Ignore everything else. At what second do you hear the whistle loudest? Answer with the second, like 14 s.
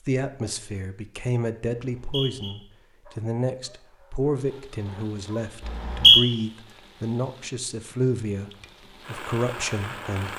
6 s.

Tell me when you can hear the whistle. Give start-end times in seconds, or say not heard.
1.8-2.5, 5.7-6.2.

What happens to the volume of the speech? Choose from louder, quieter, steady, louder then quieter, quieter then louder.
steady.